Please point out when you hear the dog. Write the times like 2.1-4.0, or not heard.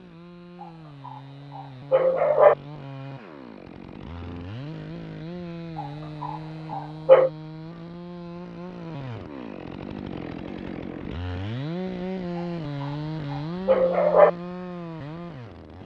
1.1-2.5, 5.8-7.3, 12.8-14.3.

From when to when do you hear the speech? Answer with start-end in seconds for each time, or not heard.
not heard.